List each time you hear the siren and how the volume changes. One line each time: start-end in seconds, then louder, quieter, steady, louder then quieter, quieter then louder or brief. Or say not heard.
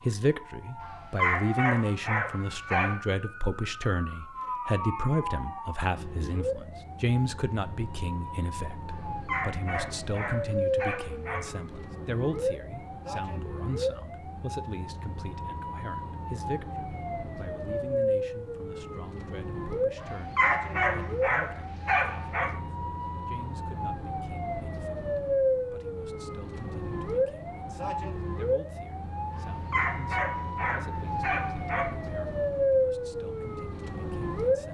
0.0-34.6 louder.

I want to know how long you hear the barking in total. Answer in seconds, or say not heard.
10 s.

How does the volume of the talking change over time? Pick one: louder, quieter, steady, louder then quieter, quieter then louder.
quieter.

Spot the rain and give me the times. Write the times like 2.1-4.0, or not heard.
not heard.